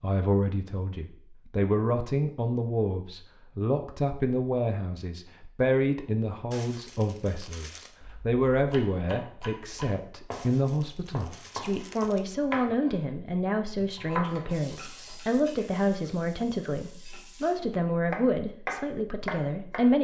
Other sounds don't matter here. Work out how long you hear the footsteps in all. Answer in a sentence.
You can't hear the footsteps here.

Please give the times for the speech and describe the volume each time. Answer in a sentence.
The speech can be heard from 0.0 to 19.9 s, at a steady volume.